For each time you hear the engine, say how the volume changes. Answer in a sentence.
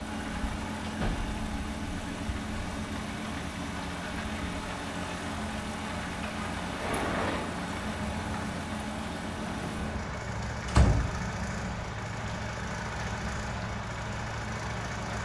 The engine can be heard from 0.0 to 15.2 s, at a steady volume.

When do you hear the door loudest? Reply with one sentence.
The loudest moment of the door is at 11 seconds.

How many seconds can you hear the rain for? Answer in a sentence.
The rain can be heard for 15 seconds in total.